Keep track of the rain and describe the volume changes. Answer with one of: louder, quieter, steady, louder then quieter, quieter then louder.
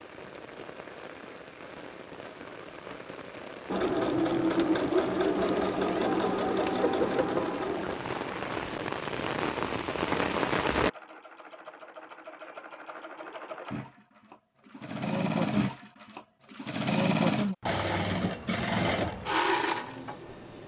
louder.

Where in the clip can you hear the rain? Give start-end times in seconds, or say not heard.
0.0-10.9.